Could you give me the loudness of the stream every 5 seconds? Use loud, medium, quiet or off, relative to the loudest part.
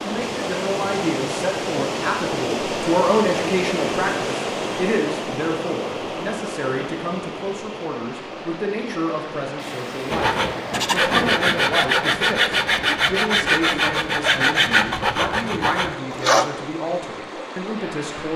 loud, medium, medium, medium.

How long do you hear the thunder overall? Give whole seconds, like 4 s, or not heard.
2 s.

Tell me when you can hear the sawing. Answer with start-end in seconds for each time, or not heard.
10.1-16.4.